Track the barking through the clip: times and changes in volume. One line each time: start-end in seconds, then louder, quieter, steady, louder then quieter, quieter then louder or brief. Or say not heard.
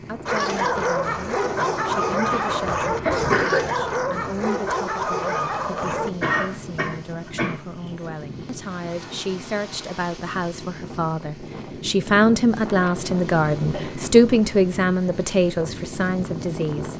0.2-6.1 steady.